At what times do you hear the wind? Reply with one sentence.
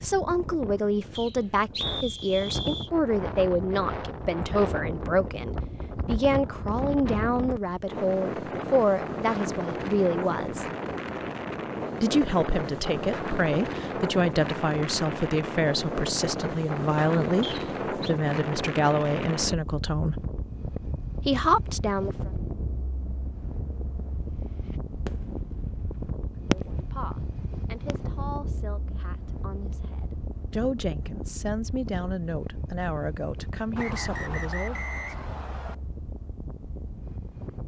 The wind can be heard from 0.0 to 37.6 s.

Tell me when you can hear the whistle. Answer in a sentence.
You can hear the whistle from 1.1 to 2.9 s, from 17.4 to 18.1 s and from 33.8 to 35.8 s.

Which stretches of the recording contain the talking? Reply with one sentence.
The talking can be heard from 0.0 to 10.7 s, from 12.0 to 20.2 s, from 21.2 to 22.3 s and from 26.4 to 34.8 s.